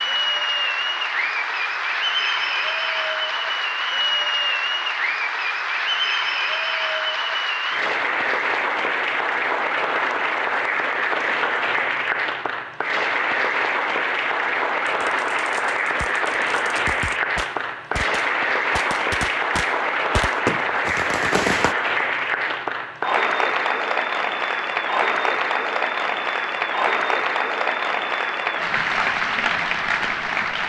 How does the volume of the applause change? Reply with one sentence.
The volume of the applause stays about the same.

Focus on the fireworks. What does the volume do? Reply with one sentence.
The loudness of the fireworks goes up.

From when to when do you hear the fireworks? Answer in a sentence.
The fireworks can be heard from 14.8 to 21.8 s.